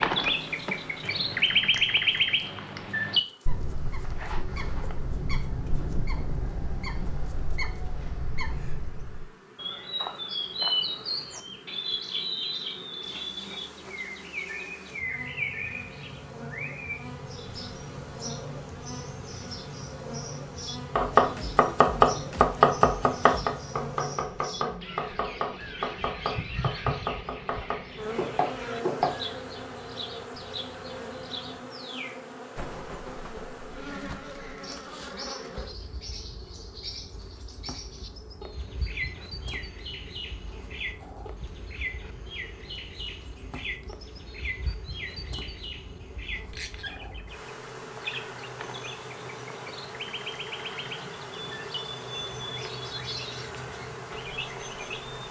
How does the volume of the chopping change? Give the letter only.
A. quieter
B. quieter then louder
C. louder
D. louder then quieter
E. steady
A.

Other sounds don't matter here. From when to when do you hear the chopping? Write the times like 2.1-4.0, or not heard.
20.9-29.1.